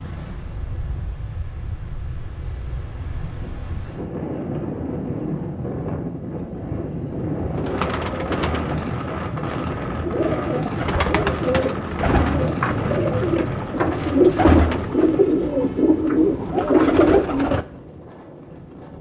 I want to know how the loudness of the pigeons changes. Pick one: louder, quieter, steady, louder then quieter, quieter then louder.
louder.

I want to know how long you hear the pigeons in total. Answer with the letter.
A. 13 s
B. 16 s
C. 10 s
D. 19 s
C.